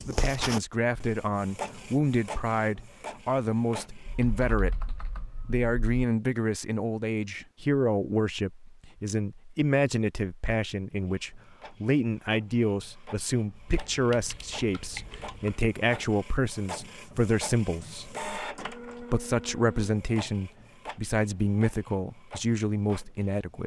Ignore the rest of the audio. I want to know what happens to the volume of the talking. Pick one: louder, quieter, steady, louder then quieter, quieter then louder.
steady.